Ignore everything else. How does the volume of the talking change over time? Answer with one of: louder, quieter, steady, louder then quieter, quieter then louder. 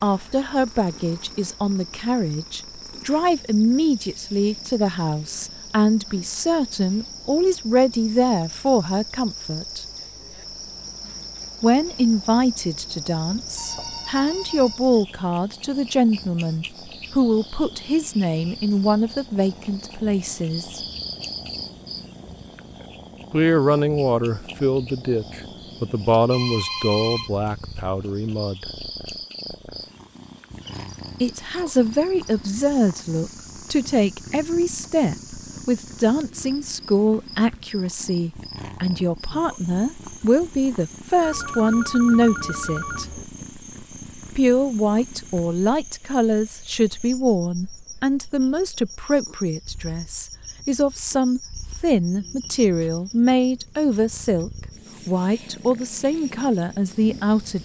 steady.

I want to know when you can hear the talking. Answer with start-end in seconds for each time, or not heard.
0.0-9.8, 11.6-20.8, 23.3-28.6, 31.2-43.1, 44.4-57.6.